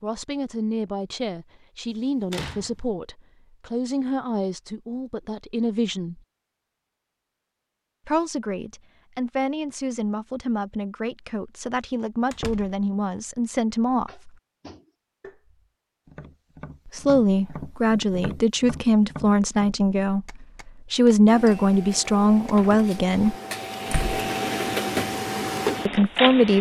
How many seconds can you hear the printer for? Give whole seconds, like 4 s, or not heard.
5 s.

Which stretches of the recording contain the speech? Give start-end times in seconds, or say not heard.
0.0-6.2, 8.1-14.3, 16.9-23.4, 25.9-26.5.